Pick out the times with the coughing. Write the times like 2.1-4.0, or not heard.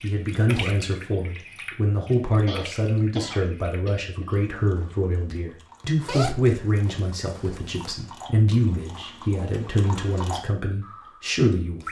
2.5-4.5.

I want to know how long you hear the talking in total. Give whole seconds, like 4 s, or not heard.
12 s.